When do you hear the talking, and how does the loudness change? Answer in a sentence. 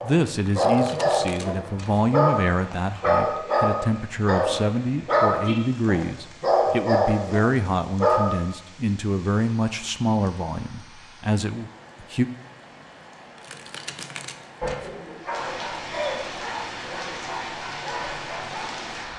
The talking can be heard from 0.0 to 12.2 s, at a steady volume.